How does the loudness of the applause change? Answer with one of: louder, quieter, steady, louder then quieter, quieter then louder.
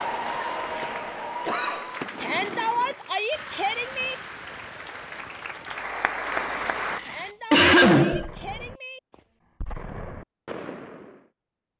quieter then louder.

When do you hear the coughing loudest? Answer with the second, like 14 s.
8 s.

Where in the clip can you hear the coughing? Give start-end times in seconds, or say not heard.
0.4-2.4, 6.9-8.3.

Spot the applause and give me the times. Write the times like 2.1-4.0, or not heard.
0.0-7.0.